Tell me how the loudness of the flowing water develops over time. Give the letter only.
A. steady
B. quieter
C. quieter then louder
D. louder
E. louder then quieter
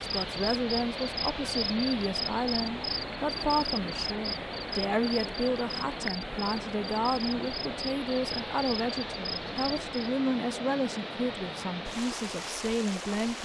A.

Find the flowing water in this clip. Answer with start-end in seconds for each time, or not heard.
0.0-13.4.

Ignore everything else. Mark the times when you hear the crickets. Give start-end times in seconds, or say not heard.
0.0-10.1.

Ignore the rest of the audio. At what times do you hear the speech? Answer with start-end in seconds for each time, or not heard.
0.0-13.4.